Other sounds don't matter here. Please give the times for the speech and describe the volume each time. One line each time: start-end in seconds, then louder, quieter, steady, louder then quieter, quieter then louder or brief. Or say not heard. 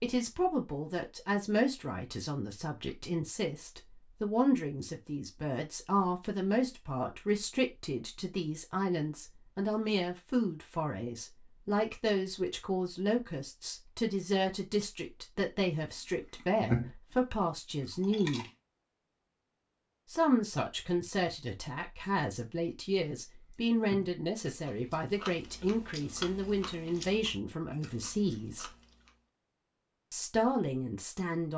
0.0-18.4 steady
20.1-28.7 steady
30.1-31.5 brief.